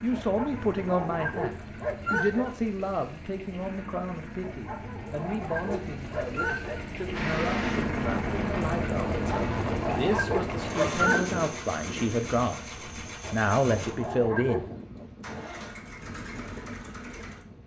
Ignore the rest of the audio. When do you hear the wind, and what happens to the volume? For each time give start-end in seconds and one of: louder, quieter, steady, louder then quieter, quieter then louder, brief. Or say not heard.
7.1-17.6 quieter.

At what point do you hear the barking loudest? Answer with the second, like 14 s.
11 s.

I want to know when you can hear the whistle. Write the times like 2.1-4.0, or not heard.
not heard.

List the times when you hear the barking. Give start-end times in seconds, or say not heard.
0.1-2.5, 4.4-6.8, 9.2-11.2, 13.2-14.8.